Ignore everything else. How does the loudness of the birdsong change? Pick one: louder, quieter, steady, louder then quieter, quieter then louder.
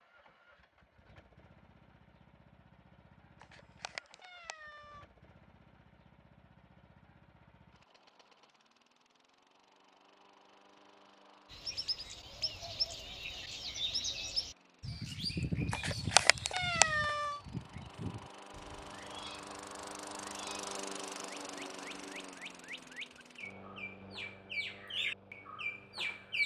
quieter then louder.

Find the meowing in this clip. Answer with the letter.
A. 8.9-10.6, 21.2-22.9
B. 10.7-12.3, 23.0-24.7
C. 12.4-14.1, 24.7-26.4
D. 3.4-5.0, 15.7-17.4
D.